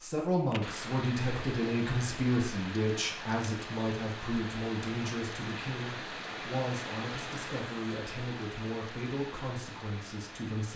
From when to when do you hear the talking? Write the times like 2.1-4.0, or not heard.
0.0-10.7.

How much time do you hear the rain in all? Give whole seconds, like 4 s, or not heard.
11 s.